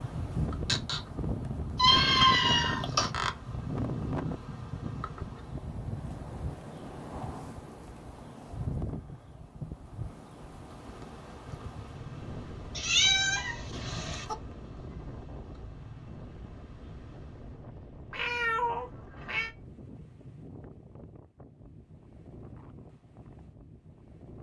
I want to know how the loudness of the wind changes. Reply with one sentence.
The volume of the wind goes down.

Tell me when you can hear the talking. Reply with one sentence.
The talking can't be heard in this clip.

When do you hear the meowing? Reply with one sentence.
You can hear the meowing from 1.8 to 3.1 s, from 12.8 to 14.3 s and from 18.1 to 19.6 s.